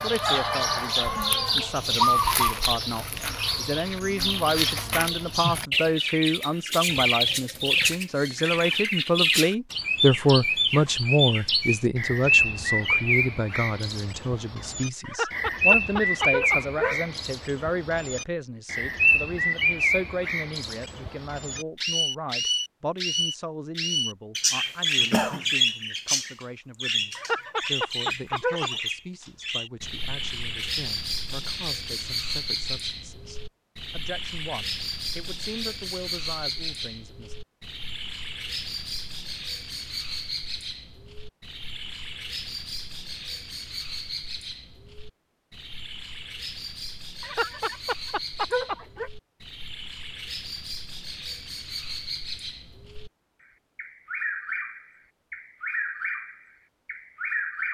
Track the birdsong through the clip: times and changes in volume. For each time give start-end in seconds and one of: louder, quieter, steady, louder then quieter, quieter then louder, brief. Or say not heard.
0.0-57.7 quieter.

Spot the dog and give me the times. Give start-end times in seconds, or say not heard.
15.0-17.0, 27.1-28.8, 47.2-49.1.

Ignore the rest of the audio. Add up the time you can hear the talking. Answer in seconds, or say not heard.
37 s.